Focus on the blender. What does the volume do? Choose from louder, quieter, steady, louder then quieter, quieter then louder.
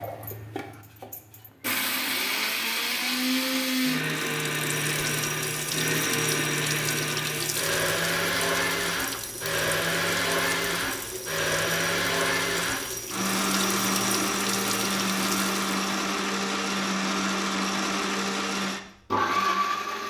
steady.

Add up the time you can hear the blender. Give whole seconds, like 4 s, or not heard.
20 s.